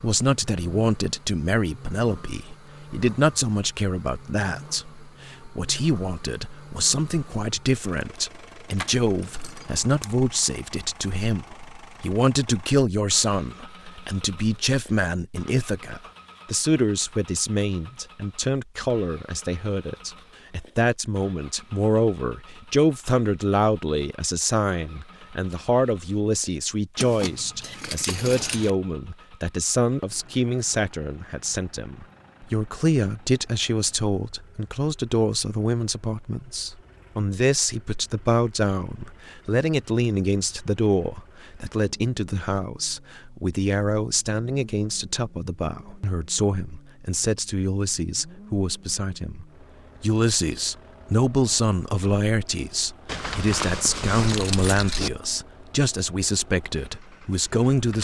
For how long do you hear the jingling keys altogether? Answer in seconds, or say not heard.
5 s.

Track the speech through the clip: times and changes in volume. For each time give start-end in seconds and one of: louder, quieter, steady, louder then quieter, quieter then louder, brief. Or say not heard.
0.0-57.9 steady.